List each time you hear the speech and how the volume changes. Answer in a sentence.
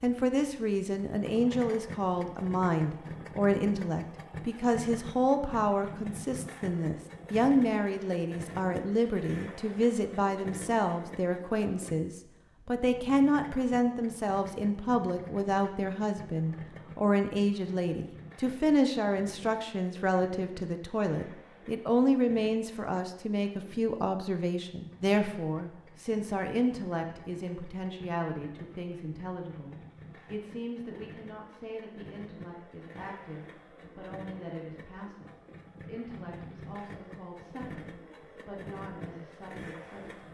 You can hear the speech from 0.0 to 40.2 s, getting quieter.